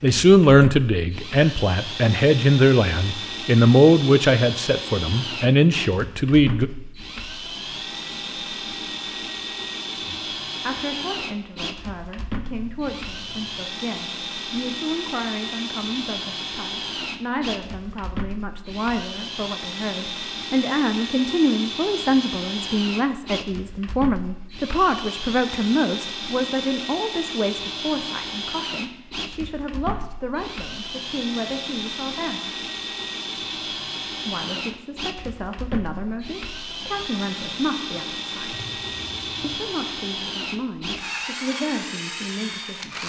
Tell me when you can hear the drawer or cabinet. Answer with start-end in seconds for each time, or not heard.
not heard.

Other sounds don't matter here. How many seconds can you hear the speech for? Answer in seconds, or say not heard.
37 s.